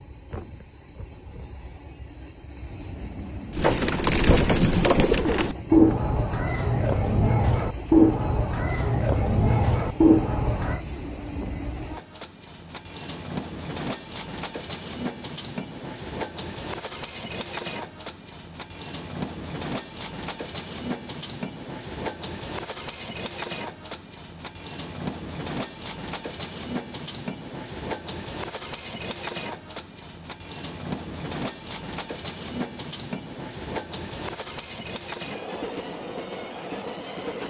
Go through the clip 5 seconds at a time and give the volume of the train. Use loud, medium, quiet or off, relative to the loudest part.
medium, medium, loud, loud, loud, loud, loud, loud.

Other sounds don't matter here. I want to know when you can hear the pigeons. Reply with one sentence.
The pigeons can be heard from 3.5 to 10.8 s.